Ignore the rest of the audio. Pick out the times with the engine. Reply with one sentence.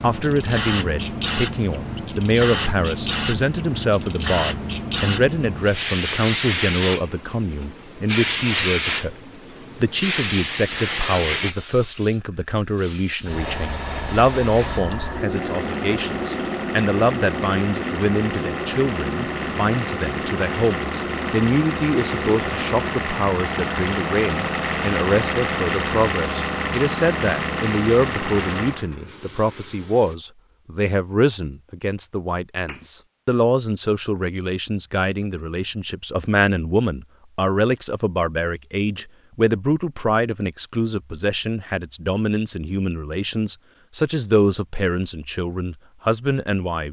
The engine can be heard from 15.2 to 28.9 s.